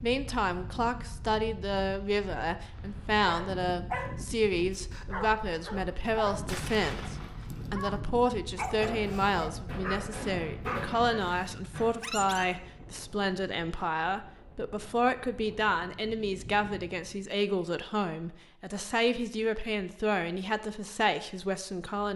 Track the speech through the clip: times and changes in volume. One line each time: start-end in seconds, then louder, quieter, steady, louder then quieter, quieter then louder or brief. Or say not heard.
0.0-22.1 steady.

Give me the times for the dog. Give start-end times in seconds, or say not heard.
3.2-12.4.